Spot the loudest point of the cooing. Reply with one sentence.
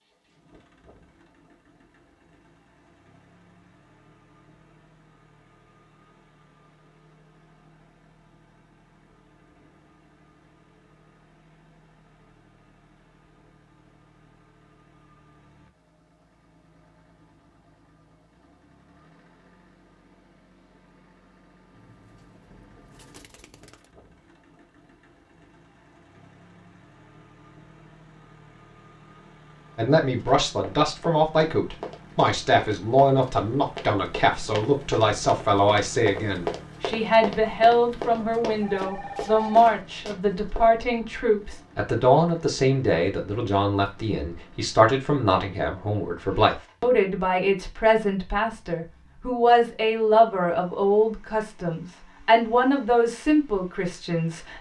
The loudest moment of the cooing is at 23 seconds.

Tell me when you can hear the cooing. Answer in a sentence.
The cooing can be heard from 21.7 to 23.9 s.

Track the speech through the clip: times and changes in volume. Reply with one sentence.
The speech can be heard from 29.8 to 54.5 s, at a steady volume.